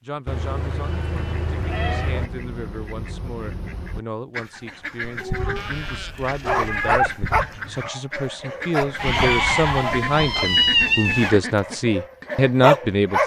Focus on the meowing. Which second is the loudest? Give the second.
11 s.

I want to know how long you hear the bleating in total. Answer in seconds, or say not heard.
5 s.